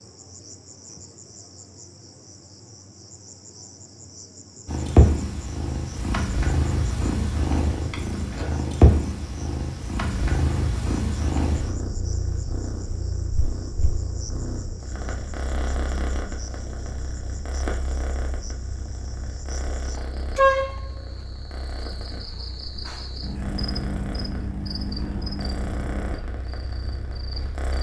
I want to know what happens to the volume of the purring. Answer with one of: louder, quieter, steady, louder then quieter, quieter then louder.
quieter.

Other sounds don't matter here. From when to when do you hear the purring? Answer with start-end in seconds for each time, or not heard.
4.7-27.7.